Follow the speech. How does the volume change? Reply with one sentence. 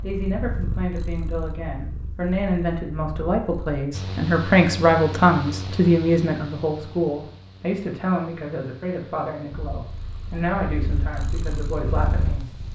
The volume of the speech goes up, then down.